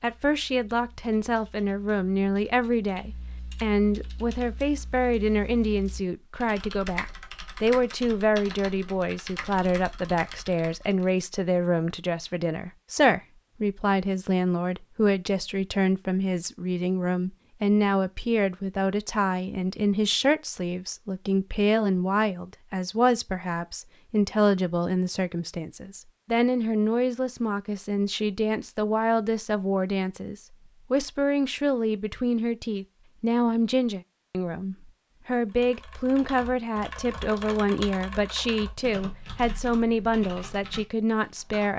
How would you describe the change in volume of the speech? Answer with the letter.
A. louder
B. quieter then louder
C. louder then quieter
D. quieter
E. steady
E.